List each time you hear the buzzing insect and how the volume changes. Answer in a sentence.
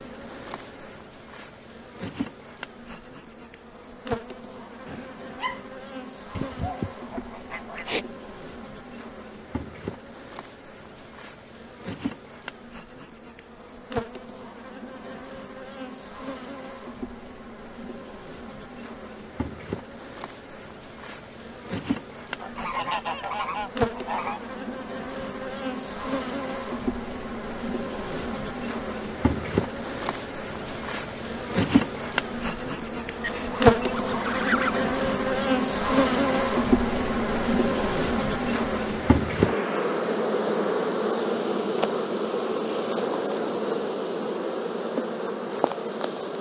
The buzzing insect can be heard from 0.0 to 46.3 s, getting louder.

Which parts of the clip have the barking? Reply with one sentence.
You can hear the barking from 4.8 to 5.7 s.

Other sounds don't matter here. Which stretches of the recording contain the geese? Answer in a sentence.
The geese can be heard from 6.3 to 8.1 s, from 22.4 to 24.4 s and from 33.2 to 34.9 s.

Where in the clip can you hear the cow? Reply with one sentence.
You can't hear the cow here.